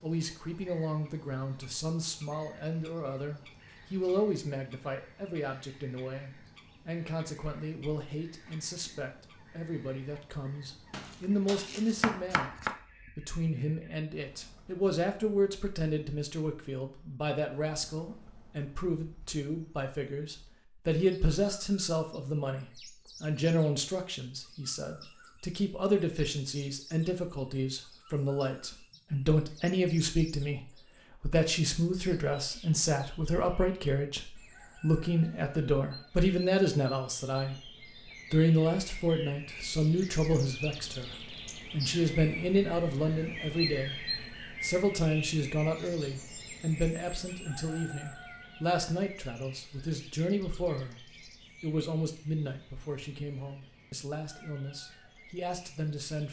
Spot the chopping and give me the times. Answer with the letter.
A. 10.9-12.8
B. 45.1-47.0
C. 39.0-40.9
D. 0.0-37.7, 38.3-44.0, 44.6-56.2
A.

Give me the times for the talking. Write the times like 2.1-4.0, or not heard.
0.0-37.7, 38.3-44.0, 44.6-56.2.